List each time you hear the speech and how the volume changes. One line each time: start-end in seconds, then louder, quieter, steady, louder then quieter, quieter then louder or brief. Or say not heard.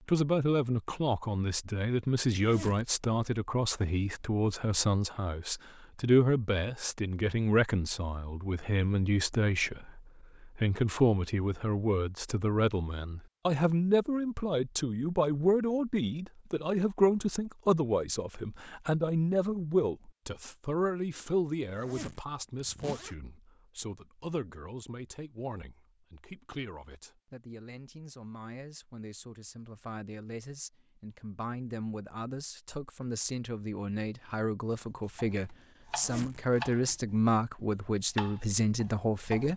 0.1-39.5 quieter then louder.